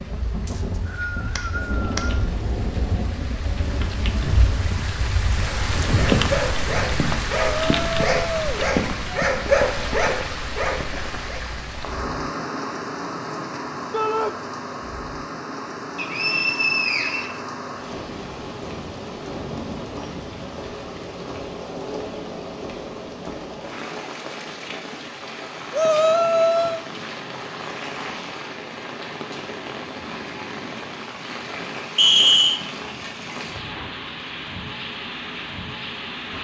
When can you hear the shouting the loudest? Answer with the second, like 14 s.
26 s.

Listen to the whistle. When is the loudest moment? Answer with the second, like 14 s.
32 s.